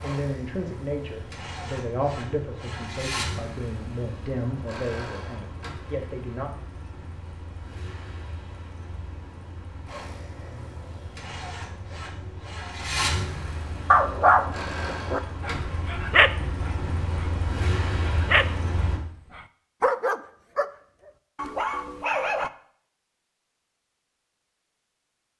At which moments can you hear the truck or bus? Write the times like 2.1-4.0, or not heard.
0.0-19.0.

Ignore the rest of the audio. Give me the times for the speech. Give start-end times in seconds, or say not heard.
0.0-6.5.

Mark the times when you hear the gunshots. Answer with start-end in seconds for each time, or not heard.
not heard.